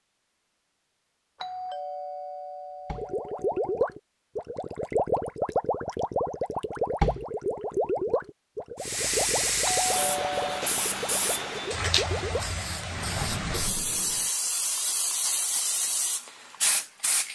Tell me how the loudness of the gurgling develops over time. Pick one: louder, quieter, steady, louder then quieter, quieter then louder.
quieter.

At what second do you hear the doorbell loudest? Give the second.
10 s.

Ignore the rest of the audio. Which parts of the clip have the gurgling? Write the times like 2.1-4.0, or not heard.
3.0-14.3.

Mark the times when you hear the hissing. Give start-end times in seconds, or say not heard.
8.8-17.3.